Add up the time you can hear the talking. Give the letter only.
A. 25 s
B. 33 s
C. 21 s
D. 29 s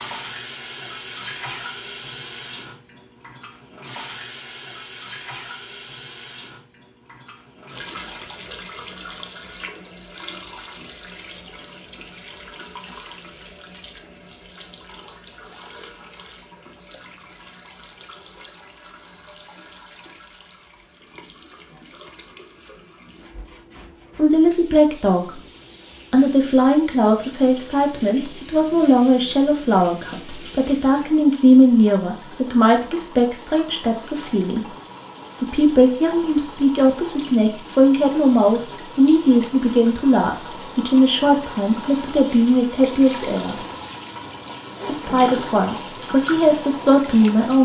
C.